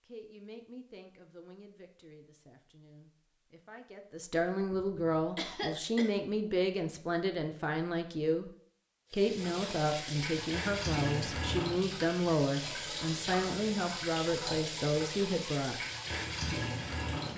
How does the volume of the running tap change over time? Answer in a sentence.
The volume of the running tap stays about the same.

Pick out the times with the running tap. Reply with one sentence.
The running tap can be heard from 9.1 to 17.3 s.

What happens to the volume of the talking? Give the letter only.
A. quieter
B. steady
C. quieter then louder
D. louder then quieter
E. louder
E.